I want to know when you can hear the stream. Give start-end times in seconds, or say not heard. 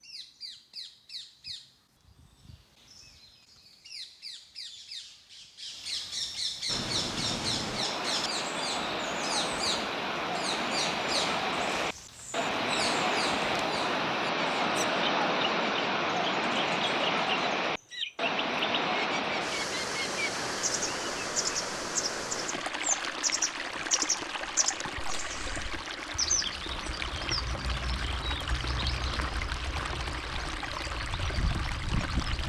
6.7-32.4.